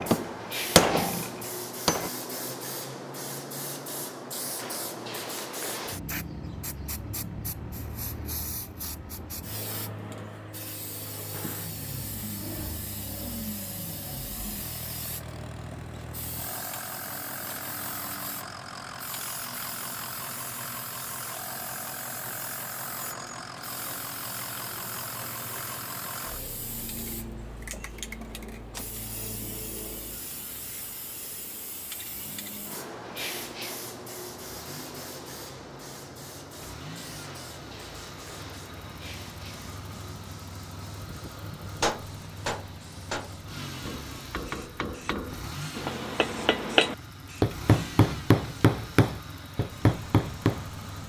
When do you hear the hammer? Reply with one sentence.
You can hear the hammer from 0.0 to 2.1 s and from 41.8 to 50.7 s.